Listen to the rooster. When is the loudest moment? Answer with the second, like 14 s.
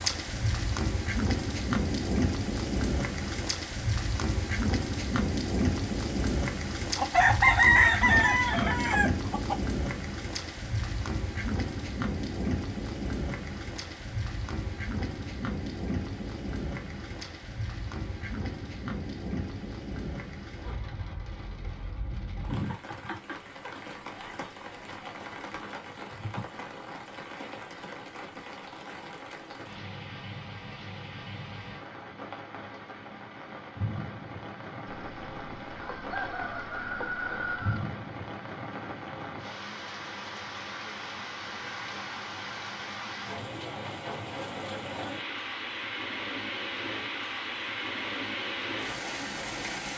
8 s.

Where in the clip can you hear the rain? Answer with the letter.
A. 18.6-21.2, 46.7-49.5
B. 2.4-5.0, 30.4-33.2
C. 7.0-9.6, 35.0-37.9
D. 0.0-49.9
D.